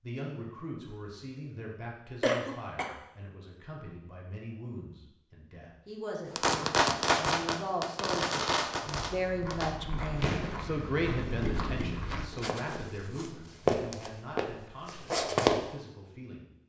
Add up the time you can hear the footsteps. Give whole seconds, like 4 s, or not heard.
7 s.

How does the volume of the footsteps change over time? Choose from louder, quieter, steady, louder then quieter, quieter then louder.
louder.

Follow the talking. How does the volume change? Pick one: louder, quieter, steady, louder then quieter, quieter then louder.
louder then quieter.